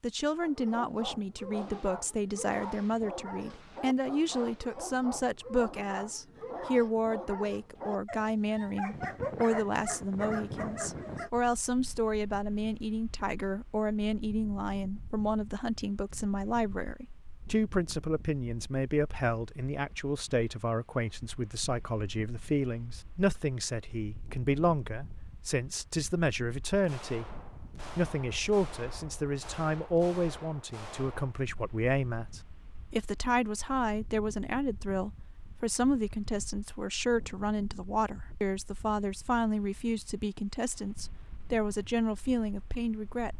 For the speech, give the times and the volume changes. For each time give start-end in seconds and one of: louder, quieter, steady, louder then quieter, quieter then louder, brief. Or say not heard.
0.0-43.3 steady.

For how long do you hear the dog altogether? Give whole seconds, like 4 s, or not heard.
11 s.